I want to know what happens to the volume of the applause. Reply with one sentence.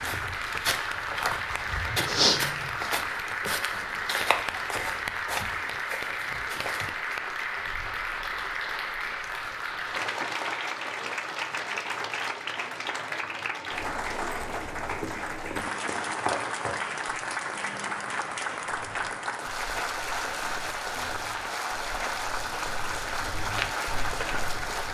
The loudness of the applause stays about the same.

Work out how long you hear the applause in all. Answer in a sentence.
The applause can be heard for 25 seconds in total.